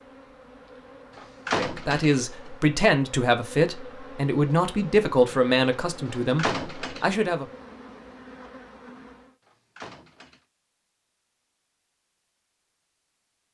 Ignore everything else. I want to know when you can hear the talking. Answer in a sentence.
The talking can be heard from 1.5 to 7.5 s.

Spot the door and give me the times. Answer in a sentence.
You can hear the door from 1.1 to 2.5 s, from 6.3 to 7.2 s and from 9.4 to 10.4 s.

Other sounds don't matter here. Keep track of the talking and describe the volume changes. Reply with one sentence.
The volume of the talking goes down.